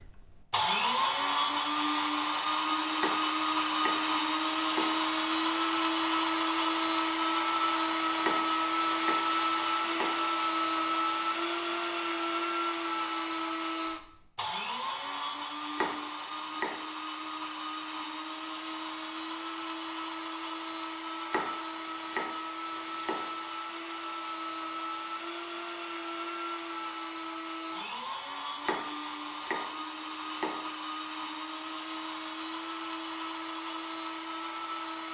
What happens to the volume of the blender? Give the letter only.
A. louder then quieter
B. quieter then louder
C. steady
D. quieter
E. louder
D.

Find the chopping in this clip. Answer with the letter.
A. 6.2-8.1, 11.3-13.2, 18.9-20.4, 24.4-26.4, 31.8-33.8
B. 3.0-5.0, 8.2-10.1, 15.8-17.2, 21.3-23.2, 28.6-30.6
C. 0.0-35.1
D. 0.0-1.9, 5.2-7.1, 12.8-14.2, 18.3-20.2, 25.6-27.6
B.